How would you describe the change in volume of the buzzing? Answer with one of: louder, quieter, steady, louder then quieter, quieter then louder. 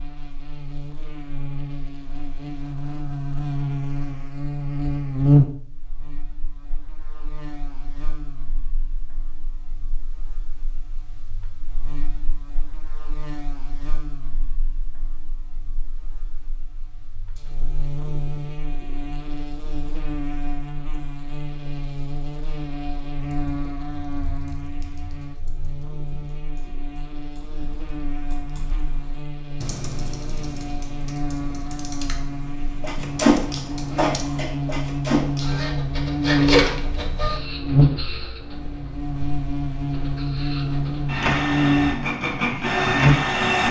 quieter then louder.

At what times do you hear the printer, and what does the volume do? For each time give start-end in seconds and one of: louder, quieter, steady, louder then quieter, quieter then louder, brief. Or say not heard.
32.8-43.6 quieter then louder.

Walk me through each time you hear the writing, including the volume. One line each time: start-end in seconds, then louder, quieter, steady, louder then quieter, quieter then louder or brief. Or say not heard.
not heard.